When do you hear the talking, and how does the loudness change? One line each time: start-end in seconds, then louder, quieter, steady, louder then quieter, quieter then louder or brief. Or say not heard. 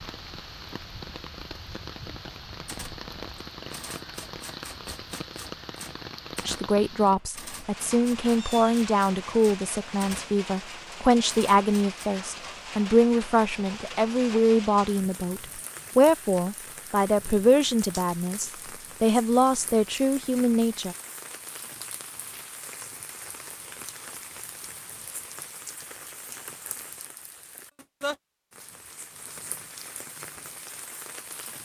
6.5-20.9 steady.